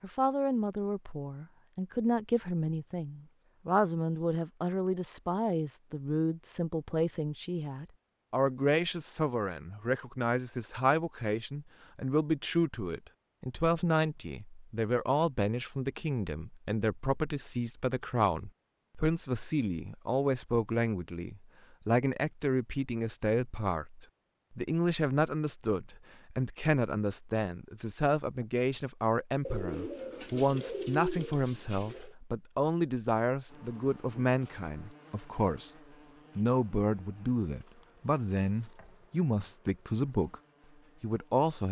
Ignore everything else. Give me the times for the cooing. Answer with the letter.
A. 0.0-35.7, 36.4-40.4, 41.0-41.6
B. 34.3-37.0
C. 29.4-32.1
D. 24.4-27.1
C.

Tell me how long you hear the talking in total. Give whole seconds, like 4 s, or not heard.
40 s.